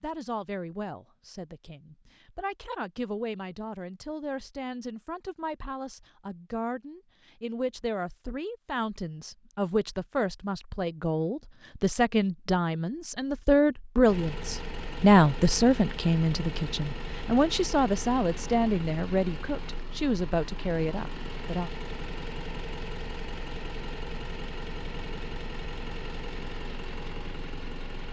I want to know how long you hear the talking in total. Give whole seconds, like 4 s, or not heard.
22 s.